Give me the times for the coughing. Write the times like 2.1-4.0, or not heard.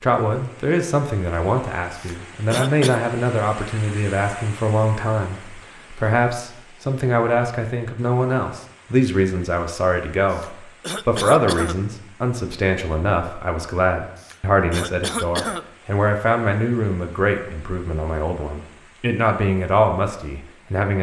1.9-3.0, 10.3-11.8, 14.2-15.7.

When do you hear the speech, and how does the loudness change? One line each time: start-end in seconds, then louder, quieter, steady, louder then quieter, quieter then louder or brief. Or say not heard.
0.0-20.9 steady.